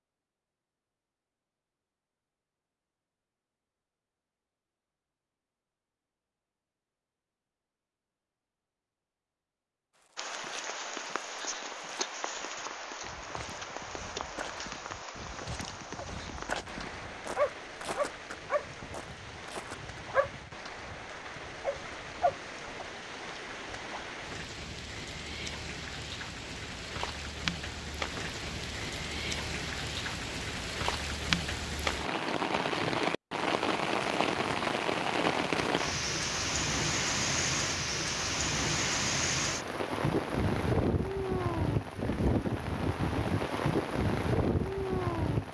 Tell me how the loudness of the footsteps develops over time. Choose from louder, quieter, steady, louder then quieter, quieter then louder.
louder.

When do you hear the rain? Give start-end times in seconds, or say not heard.
10.2-45.4.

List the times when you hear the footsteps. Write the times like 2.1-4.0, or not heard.
9.9-20.0.